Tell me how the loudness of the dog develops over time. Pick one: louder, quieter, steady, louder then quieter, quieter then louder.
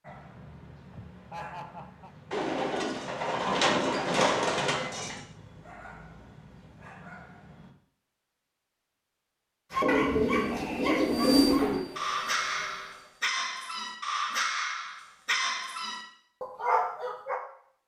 louder.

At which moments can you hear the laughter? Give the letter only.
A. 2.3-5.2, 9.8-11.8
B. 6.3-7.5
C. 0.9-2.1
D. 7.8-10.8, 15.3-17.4
C.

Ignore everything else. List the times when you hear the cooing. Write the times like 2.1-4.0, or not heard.
2.3-5.2, 9.8-11.8.